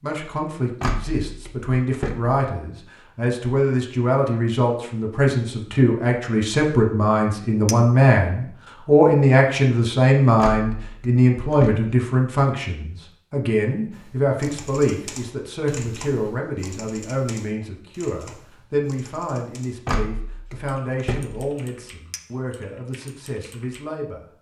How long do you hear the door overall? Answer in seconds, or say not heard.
5 s.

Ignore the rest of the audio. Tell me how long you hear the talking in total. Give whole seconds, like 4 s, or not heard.
24 s.